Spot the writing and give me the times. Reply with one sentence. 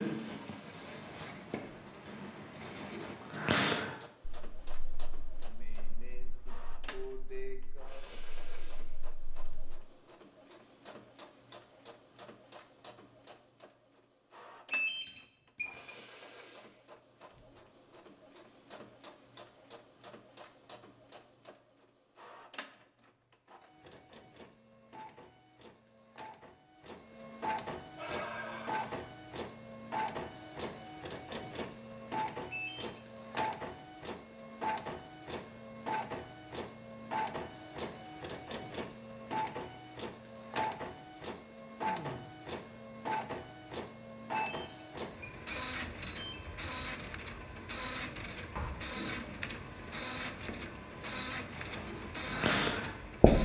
You can hear the writing from 0.0 to 9.8 s and from 48.5 to 53.3 s.